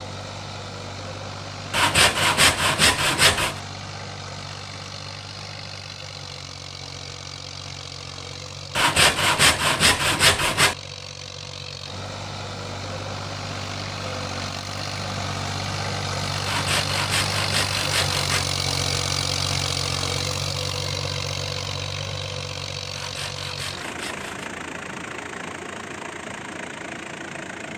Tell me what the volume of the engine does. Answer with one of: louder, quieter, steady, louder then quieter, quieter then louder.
louder then quieter.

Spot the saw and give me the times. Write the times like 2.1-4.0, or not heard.
1.7-3.6, 8.8-10.8, 16.4-18.4, 22.9-24.5.